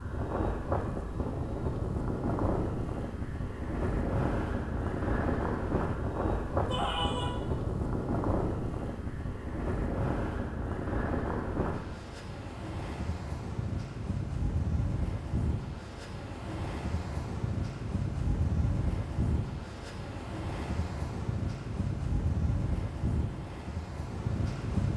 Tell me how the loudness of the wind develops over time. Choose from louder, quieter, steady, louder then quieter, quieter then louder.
steady.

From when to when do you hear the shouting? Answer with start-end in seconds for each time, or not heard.
6.7-7.3.